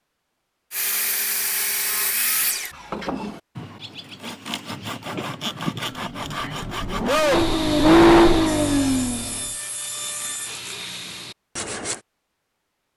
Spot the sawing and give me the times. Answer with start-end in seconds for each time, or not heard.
0.7-12.0.